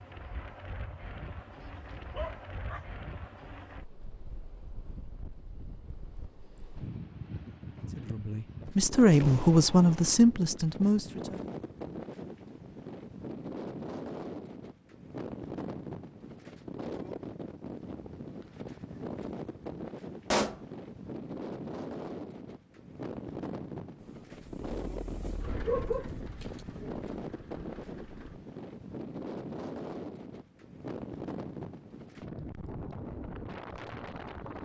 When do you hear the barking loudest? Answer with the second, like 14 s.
26 s.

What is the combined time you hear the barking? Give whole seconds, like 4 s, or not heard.
3 s.